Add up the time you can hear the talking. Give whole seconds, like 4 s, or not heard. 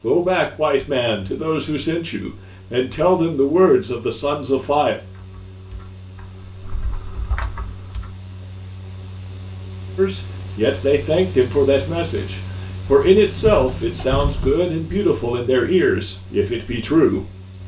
12 s.